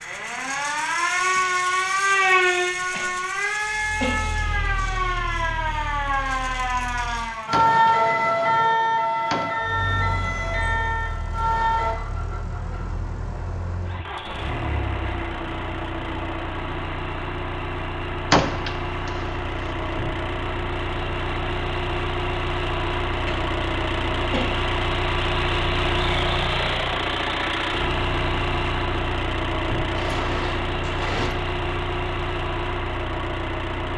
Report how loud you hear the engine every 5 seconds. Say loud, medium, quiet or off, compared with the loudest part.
quiet, quiet, medium, medium, loud, loud, loud.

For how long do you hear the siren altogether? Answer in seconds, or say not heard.
12 s.